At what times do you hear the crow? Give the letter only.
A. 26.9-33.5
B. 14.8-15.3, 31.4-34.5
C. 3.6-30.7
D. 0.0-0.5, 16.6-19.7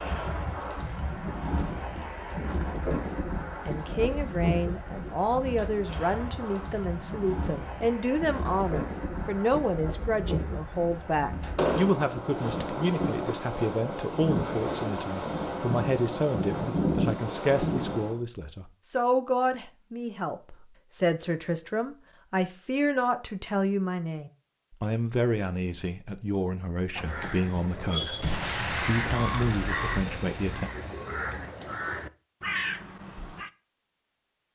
A.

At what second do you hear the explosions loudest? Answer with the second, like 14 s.
12 s.